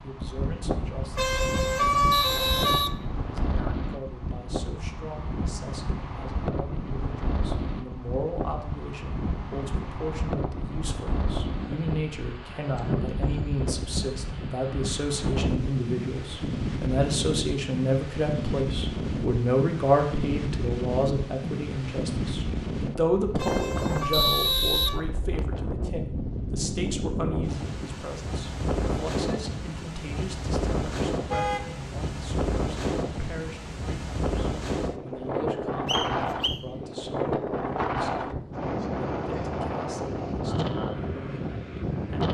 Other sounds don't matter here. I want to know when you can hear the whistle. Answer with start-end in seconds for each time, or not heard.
2.1-3.6, 24.1-25.6, 35.9-36.6.